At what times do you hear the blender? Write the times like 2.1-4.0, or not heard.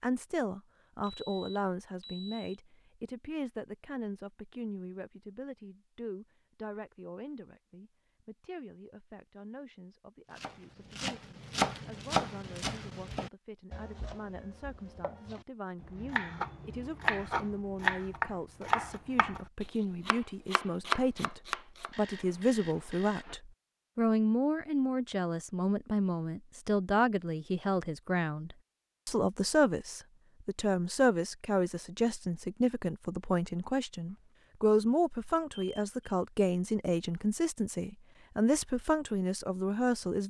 not heard.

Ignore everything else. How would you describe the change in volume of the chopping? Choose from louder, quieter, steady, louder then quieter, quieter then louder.
quieter then louder.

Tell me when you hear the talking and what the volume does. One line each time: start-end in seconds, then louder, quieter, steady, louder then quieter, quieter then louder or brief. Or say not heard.
0.0-40.2 quieter then louder.